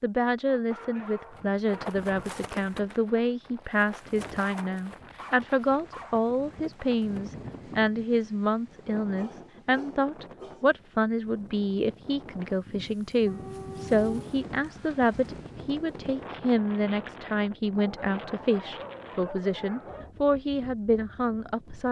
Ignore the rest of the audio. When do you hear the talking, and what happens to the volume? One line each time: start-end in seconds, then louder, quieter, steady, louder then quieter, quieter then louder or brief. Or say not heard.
0.0-21.8 steady.